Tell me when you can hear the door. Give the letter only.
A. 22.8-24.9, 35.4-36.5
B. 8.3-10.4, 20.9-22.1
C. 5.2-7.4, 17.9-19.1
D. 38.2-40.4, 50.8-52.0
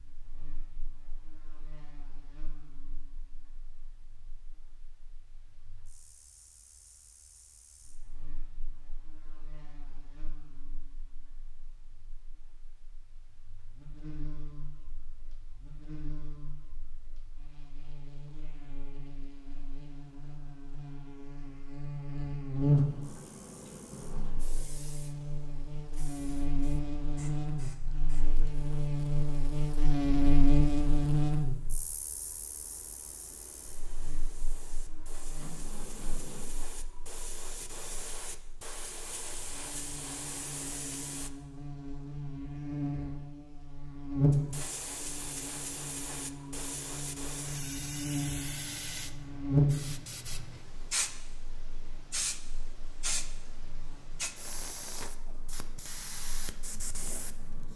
A.